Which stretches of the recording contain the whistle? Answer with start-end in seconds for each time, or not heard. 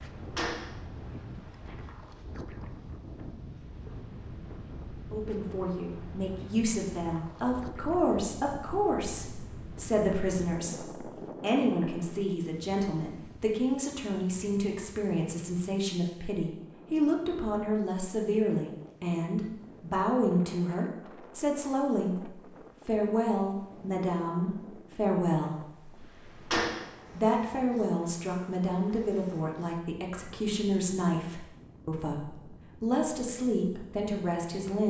not heard.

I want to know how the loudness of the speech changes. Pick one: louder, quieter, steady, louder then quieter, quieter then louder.
steady.